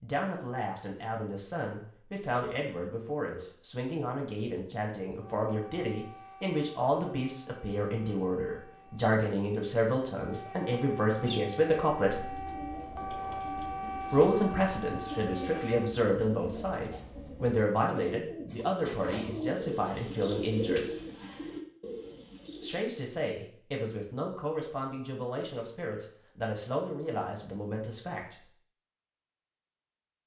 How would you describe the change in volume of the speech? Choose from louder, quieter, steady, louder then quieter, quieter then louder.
louder then quieter.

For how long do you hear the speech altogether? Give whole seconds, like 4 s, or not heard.
25 s.